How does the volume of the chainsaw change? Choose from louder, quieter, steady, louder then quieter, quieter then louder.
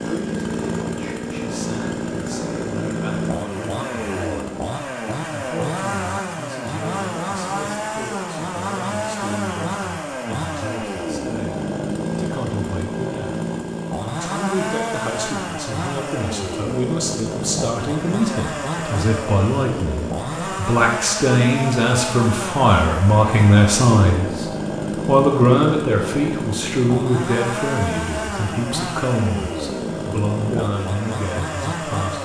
steady.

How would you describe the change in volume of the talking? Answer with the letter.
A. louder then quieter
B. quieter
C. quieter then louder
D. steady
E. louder
A.